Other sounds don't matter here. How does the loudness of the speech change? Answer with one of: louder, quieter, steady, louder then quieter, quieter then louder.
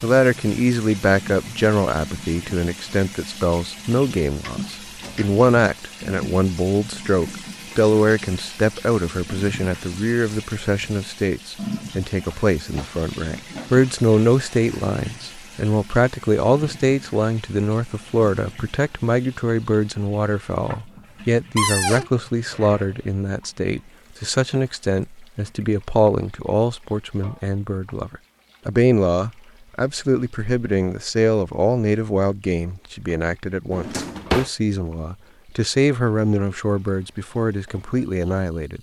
steady.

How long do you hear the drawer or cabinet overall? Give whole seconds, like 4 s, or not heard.
2 s.